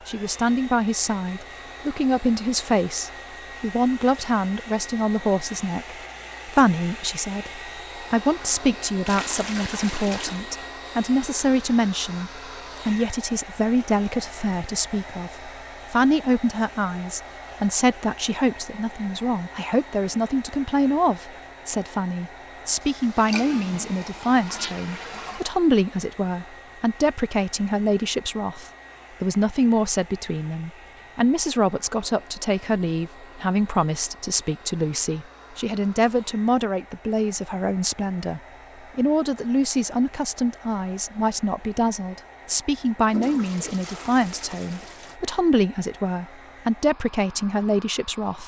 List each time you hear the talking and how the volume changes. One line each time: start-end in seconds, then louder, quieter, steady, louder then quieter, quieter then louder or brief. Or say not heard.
0.1-48.4 steady.